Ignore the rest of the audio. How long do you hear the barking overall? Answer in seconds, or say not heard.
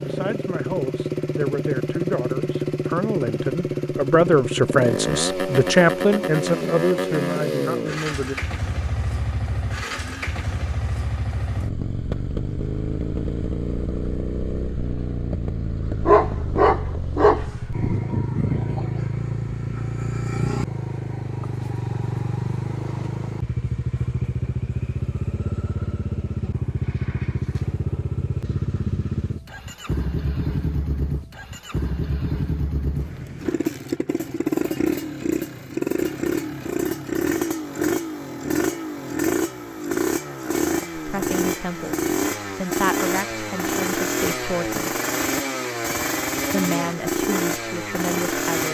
2 s.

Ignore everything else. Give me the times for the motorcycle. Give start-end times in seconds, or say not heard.
0.0-48.6.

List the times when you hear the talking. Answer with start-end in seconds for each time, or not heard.
0.0-8.3, 41.0-45.0, 46.5-48.6.